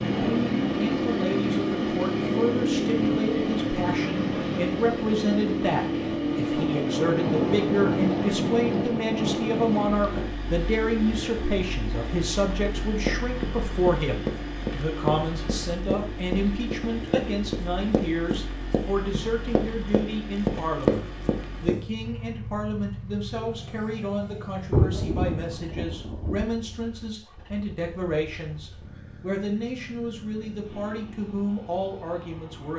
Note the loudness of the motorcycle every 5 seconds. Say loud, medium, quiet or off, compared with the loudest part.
loud, loud, medium, quiet, quiet, quiet, quiet.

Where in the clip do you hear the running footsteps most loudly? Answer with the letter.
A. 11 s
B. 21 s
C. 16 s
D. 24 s
B.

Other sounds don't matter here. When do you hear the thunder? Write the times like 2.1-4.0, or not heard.
6.5-10.3, 24.7-26.4.